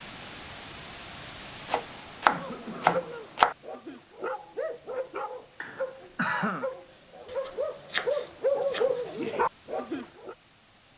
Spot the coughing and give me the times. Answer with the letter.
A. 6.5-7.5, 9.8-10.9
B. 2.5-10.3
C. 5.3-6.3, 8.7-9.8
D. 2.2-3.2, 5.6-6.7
D.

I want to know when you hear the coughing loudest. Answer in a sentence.
The loudest moment of the coughing is at 6 seconds.